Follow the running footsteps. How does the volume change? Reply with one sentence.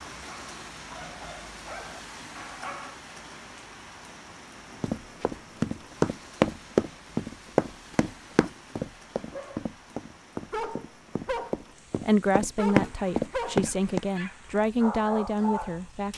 The volume of the running footsteps goes down, then up.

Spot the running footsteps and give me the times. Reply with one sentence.
You can hear the running footsteps from 4.8 to 14.0 s.